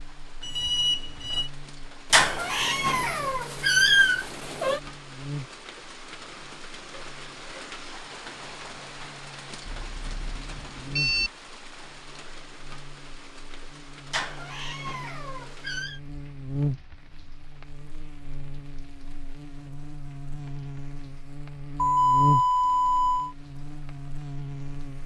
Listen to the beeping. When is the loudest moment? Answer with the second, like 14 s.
22 s.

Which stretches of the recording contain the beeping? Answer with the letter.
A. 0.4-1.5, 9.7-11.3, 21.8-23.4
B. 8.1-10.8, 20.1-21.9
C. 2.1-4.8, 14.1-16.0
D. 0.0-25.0
A.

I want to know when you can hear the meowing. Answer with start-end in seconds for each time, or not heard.
2.1-4.8, 14.1-16.0.